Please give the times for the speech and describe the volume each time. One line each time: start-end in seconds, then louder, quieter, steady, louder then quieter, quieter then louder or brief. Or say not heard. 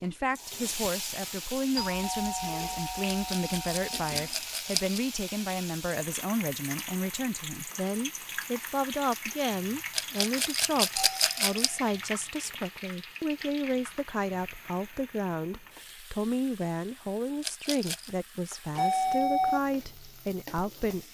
0.0-21.1 steady.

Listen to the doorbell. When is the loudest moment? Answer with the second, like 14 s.
19 s.